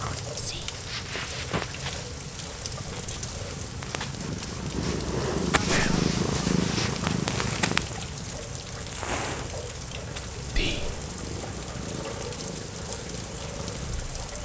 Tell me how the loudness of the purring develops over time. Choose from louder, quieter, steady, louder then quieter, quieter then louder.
louder then quieter.